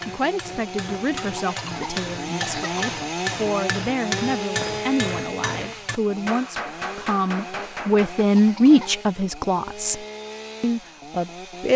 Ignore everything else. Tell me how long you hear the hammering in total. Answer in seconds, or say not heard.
8 s.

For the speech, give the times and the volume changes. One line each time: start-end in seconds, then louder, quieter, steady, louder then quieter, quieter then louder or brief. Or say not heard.
0.0-11.7 louder then quieter.